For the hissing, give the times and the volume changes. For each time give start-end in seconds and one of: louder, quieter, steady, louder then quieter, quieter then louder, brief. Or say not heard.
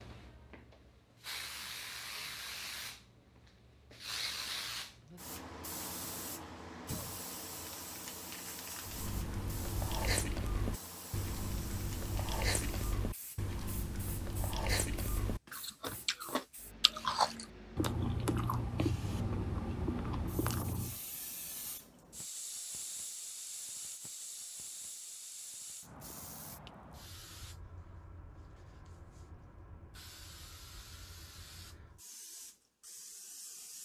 0.0-33.8 quieter.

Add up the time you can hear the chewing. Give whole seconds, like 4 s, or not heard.
12 s.